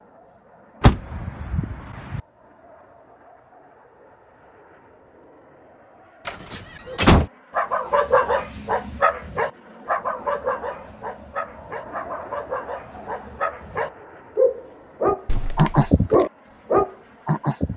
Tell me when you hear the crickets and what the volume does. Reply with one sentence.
The crickets can't be heard in this clip.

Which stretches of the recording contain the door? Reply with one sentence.
The door can be heard from 0.8 to 2.2 s, from 6.2 to 7.2 s and from 15.2 to 15.9 s.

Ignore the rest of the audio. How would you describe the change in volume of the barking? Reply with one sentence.
The loudness of the barking goes down, then up.